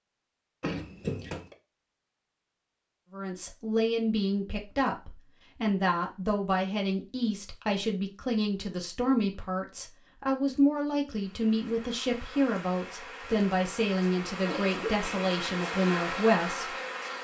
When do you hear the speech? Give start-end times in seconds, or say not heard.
3.1-16.8.